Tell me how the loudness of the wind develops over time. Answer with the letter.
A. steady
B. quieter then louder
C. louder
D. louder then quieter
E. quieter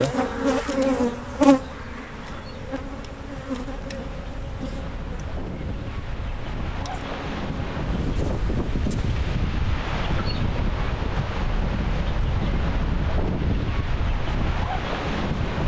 C.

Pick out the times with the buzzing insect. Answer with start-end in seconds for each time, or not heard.
0.0-9.2.